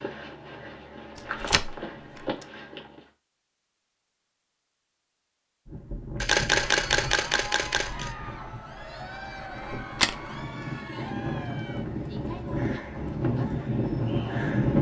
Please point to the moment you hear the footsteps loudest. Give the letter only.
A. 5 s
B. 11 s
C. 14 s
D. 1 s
D.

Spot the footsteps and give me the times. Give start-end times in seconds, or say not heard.
0.0-3.1.